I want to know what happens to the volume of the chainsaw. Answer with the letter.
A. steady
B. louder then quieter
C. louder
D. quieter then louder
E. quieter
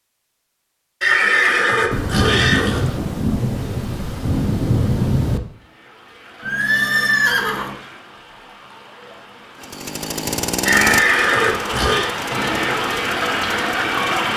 E.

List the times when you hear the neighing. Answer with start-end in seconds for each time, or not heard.
1.0-2.8, 6.4-7.8, 10.7-12.1.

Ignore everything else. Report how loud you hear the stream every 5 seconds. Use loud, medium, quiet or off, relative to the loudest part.
off, quiet, loud.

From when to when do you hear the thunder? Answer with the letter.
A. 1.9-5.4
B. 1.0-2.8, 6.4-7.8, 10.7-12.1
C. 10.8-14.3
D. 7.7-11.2
A.